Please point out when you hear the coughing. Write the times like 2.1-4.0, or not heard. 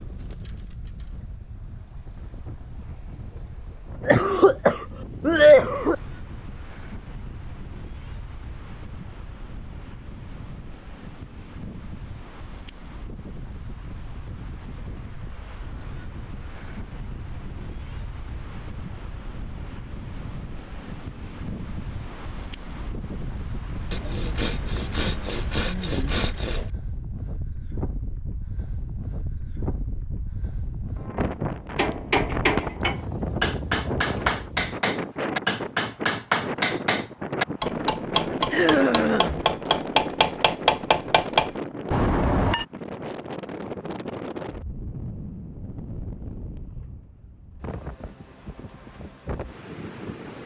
4.0-6.0, 38.5-39.5.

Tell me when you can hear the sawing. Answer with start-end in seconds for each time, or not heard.
23.9-26.7.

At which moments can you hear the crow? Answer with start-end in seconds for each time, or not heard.
not heard.